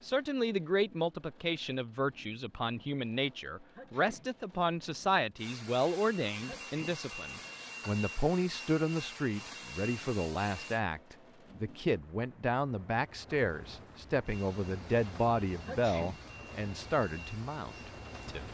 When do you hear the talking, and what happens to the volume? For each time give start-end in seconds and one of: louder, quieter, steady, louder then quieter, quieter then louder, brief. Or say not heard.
0.0-18.4 steady.